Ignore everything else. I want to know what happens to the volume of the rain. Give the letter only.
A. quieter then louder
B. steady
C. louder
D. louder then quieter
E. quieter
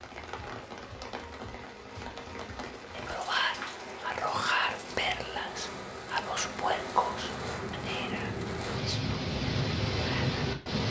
C.